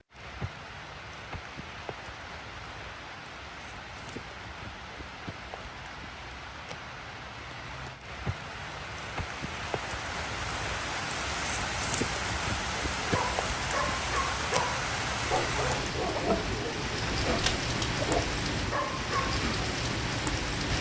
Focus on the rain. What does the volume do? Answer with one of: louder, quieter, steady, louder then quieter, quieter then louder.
louder.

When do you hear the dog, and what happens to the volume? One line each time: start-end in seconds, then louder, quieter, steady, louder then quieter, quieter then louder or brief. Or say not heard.
13.0-19.4 steady.